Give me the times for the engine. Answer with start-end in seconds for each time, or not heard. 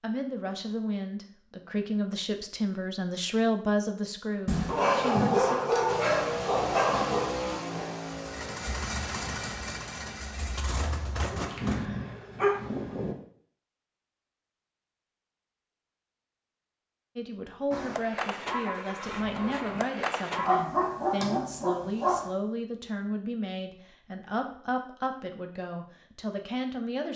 5.8-11.8, 17.7-20.5.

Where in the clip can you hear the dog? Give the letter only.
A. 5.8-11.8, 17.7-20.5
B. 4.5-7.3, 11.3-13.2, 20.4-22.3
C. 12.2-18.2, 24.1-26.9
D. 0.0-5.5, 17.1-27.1
B.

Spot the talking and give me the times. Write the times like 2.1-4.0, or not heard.
0.0-5.5, 17.1-27.1.